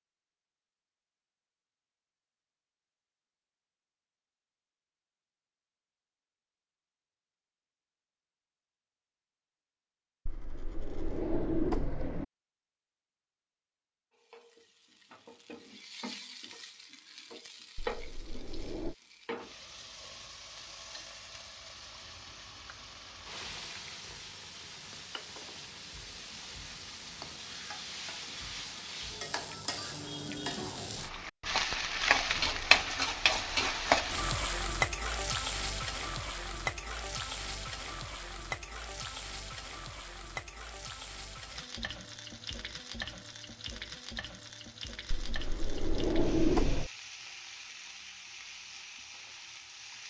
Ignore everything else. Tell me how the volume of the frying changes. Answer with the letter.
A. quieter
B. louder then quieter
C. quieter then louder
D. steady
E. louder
B.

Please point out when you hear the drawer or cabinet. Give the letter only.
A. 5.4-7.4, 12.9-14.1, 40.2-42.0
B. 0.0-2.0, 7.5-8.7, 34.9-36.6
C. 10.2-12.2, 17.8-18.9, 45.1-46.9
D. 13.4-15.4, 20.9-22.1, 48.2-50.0
C.